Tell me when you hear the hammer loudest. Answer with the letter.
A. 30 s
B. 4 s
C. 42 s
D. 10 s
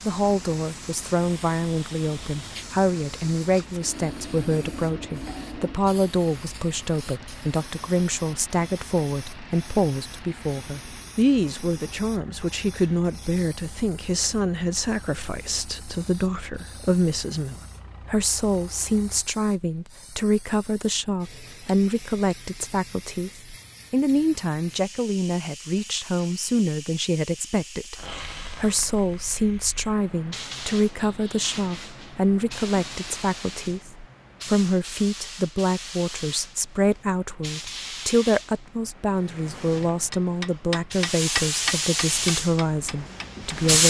C.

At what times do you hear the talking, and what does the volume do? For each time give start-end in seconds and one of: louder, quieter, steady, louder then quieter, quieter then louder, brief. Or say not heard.
0.0-43.8 steady.